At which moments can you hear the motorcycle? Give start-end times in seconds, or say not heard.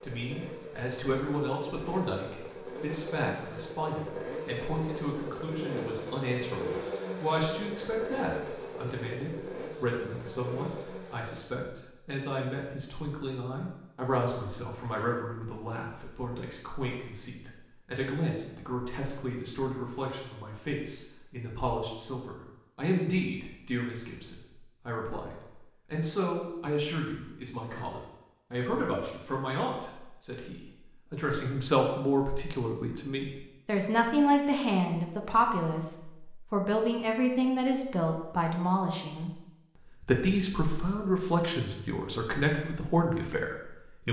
0.0-11.5.